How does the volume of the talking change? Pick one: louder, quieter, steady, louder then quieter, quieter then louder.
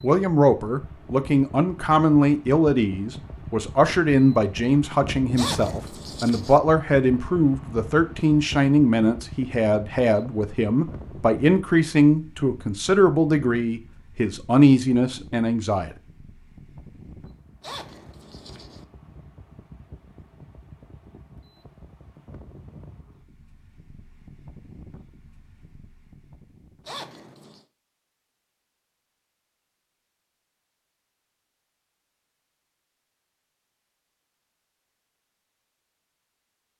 steady.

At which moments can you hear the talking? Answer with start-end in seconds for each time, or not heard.
0.0-15.9.